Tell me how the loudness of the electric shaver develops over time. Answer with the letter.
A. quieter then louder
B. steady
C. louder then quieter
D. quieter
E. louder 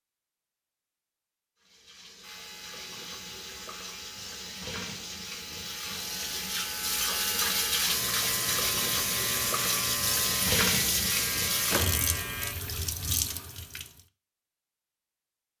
E.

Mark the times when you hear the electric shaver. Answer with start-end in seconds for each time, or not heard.
2.2-12.6.